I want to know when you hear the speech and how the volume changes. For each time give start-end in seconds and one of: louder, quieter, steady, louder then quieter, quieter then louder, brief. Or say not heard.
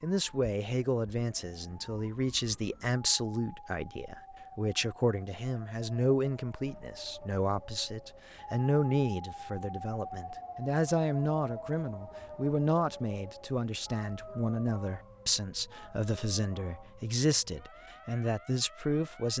0.0-19.3 steady.